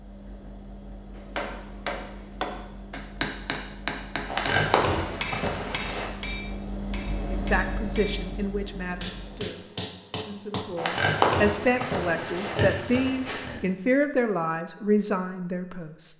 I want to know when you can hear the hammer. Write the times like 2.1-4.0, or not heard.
1.1-10.7.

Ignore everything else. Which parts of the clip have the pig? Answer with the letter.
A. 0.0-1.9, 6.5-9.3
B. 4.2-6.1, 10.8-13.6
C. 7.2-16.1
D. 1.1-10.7
B.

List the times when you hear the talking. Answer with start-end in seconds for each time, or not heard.
7.2-16.1.